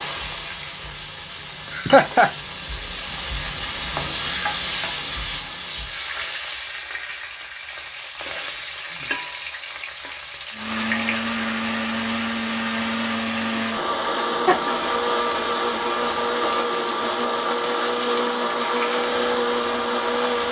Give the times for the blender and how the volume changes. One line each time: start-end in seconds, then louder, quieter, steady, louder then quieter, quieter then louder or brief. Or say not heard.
10.5-20.4 steady.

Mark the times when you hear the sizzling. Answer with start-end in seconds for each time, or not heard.
0.0-20.4.